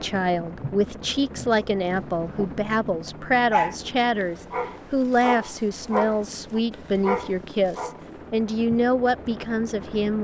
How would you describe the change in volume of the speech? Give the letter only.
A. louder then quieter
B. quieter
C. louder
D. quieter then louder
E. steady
E.